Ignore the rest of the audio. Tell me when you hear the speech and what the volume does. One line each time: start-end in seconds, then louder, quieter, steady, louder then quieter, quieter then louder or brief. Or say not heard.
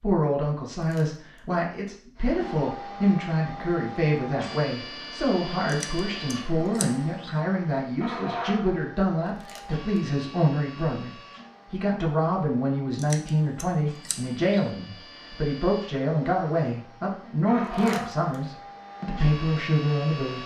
0.0-20.4 steady.